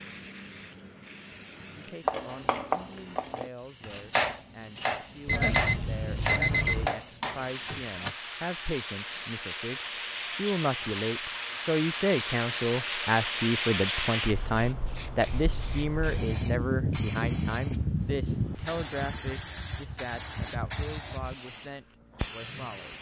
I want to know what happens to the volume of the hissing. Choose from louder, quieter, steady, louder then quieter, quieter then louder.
louder.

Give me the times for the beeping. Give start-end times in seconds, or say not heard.
5.2-7.0.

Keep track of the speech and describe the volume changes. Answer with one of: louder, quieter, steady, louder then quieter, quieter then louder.
louder then quieter.